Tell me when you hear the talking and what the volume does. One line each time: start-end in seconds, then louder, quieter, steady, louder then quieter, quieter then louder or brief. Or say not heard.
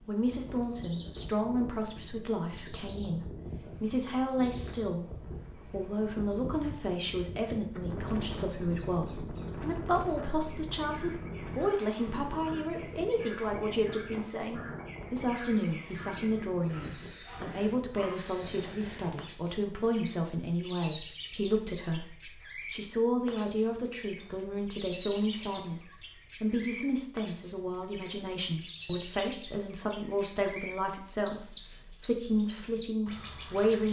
0.1-33.8 steady.